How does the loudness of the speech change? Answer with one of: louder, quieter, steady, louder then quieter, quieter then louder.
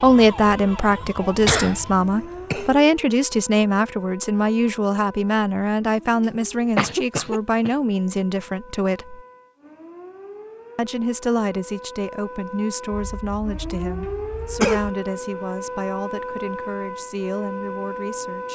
quieter.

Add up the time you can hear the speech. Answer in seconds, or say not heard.
17 s.